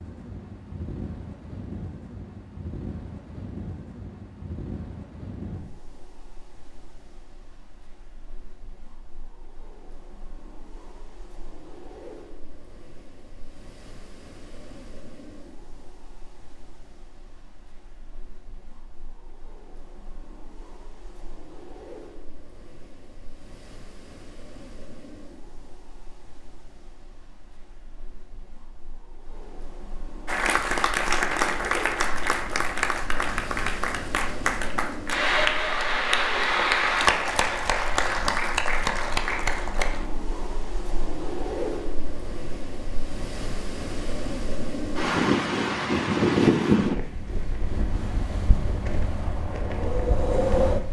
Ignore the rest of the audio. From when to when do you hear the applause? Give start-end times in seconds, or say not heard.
30.2-40.1.